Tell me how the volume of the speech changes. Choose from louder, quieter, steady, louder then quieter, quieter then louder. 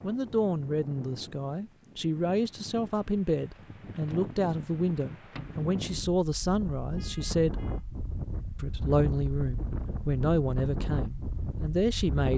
steady.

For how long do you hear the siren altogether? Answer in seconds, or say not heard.
not heard.